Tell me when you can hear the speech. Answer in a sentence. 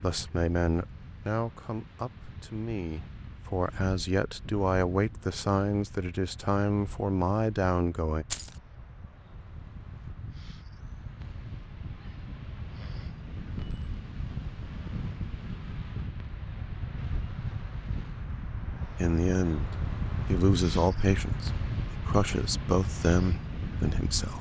The speech can be heard from 0.0 to 8.2 s and from 18.9 to 24.3 s.